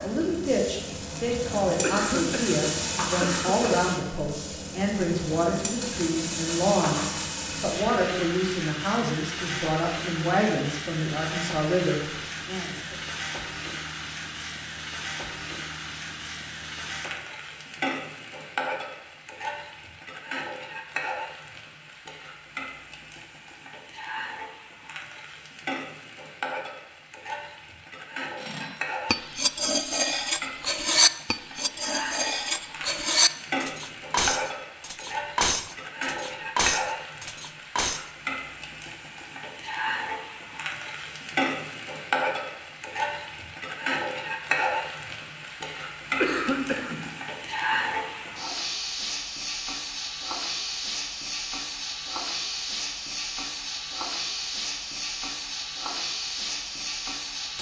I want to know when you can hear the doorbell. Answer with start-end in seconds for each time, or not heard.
not heard.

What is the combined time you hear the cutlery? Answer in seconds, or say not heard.
10 s.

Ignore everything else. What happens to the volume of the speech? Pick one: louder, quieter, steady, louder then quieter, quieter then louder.
steady.